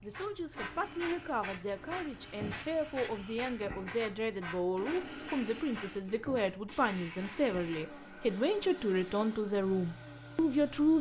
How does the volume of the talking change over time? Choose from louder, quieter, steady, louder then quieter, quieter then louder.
louder.